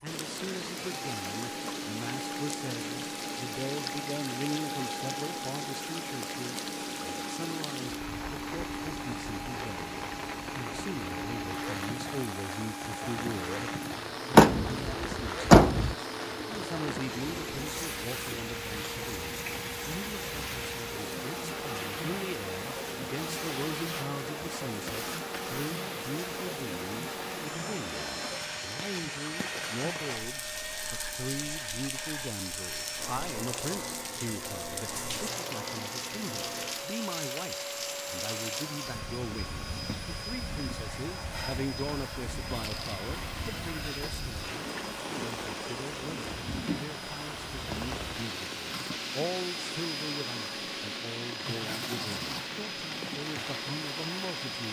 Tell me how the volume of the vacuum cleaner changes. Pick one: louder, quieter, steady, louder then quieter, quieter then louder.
steady.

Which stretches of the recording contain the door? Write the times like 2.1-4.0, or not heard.
14.3-15.9.